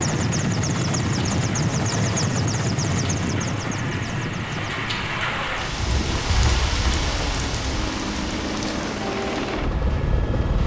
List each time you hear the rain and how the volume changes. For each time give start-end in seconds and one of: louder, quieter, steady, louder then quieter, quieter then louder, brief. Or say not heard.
0.0-10.6 louder then quieter.